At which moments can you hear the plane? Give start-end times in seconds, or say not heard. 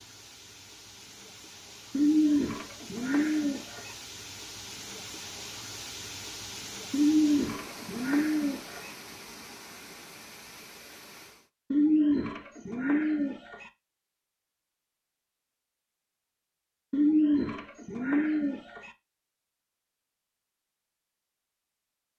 not heard.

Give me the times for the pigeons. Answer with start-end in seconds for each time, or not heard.
1.9-4.0, 6.9-8.9, 11.7-13.7, 16.9-18.9.